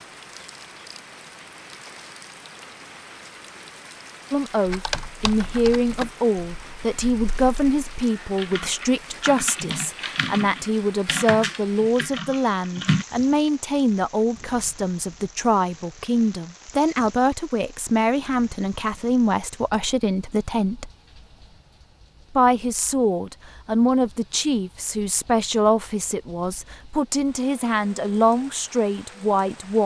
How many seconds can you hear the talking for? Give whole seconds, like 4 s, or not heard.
24 s.